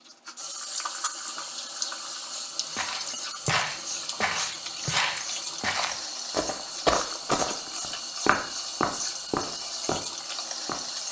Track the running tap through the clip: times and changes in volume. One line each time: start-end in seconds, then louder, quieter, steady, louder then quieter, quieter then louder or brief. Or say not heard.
0.0-11.0 steady.